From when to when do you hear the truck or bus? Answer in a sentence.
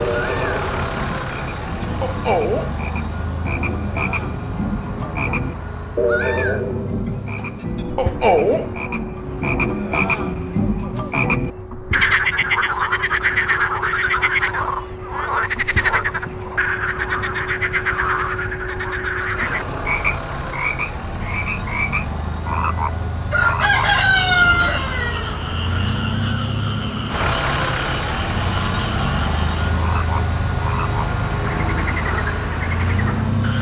The truck or bus can be heard from 0.0 to 33.5 s.